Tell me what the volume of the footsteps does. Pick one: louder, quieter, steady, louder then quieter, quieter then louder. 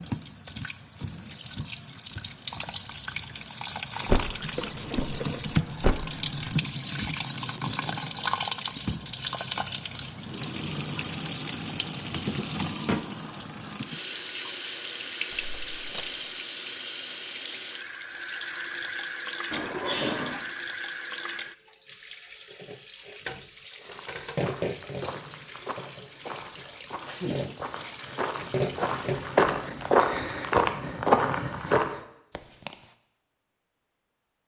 louder.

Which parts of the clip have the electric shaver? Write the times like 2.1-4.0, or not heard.
not heard.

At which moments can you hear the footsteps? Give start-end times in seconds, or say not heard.
23.8-31.9.